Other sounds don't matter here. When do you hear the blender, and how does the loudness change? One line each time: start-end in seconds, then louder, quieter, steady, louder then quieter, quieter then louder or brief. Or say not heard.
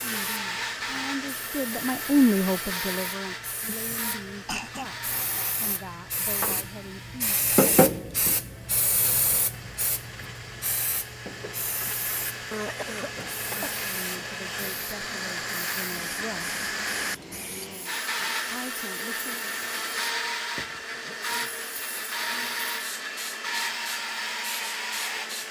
0.0-25.4 quieter then louder.